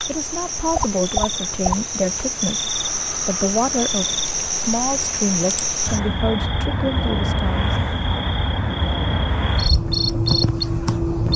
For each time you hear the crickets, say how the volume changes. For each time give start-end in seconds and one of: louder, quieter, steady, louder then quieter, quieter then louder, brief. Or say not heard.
0.0-11.3 steady.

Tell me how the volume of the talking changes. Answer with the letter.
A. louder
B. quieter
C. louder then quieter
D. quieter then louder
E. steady
E.